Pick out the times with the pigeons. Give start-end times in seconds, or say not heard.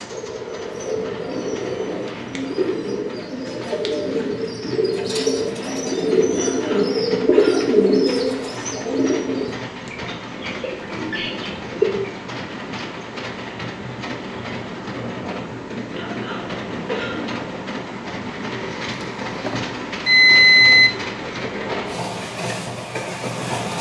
0.7-12.1.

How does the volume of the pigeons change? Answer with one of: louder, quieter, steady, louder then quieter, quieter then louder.
louder then quieter.